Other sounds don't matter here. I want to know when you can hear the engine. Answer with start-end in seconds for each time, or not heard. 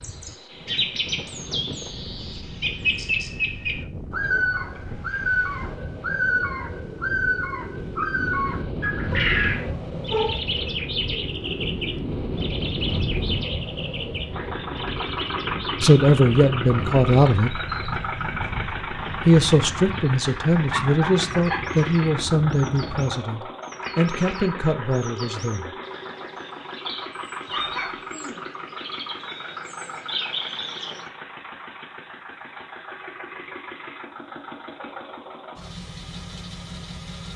14.3-37.3.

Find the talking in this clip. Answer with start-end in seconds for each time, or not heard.
15.8-17.6, 19.2-25.8.